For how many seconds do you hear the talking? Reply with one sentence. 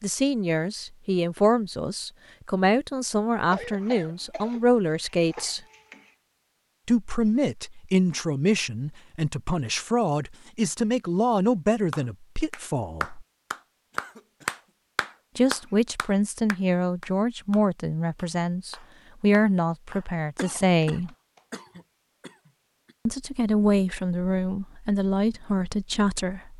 The talking can be heard for 21 seconds in total.